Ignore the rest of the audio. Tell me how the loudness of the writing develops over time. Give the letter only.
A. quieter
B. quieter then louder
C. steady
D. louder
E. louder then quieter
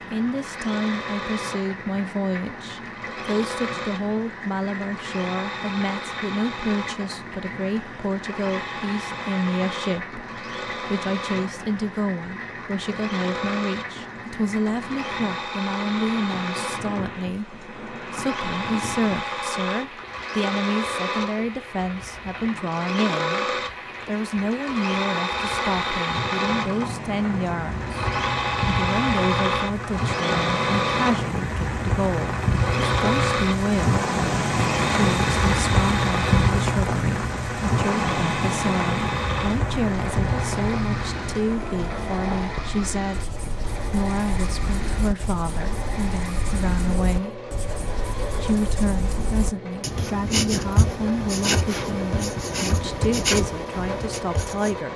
D.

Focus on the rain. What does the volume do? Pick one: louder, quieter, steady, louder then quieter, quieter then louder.
louder.